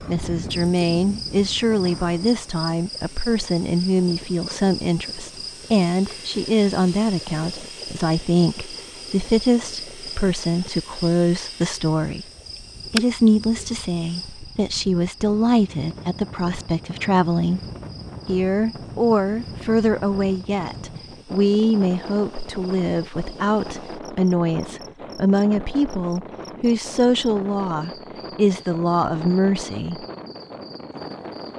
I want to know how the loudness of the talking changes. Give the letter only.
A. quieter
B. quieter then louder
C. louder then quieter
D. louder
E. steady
E.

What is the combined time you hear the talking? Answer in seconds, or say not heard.
29 s.